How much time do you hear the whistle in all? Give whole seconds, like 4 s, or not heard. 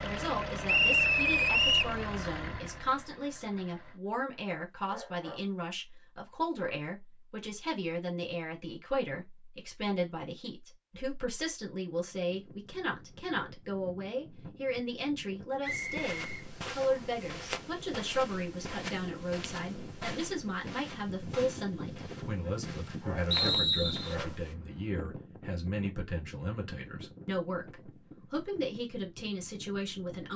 4 s.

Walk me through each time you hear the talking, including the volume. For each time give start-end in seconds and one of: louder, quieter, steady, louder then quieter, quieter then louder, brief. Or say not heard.
0.0-30.3 steady.